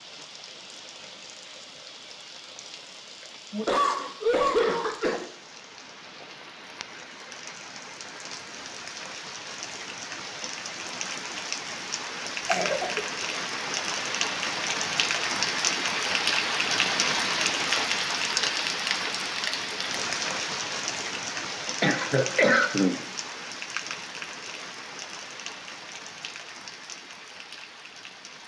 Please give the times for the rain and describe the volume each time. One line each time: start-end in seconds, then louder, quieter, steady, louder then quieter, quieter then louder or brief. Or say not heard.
0.0-28.4 louder then quieter.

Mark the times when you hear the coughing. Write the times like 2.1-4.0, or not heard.
3.5-5.3, 12.2-13.1, 21.8-22.9.